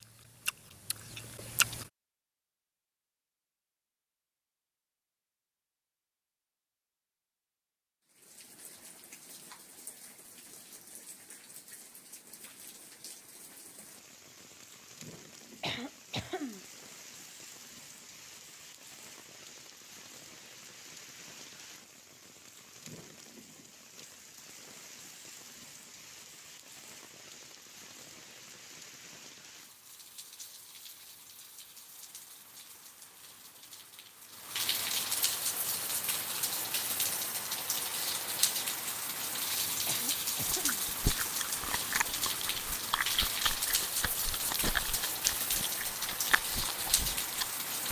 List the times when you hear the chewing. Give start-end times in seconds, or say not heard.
0.0-1.9, 40.5-47.5.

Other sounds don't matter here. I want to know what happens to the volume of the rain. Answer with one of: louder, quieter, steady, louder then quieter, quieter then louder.
louder.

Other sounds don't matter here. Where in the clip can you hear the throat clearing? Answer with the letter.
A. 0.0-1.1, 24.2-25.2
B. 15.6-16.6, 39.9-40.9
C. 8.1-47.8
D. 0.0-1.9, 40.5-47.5
B.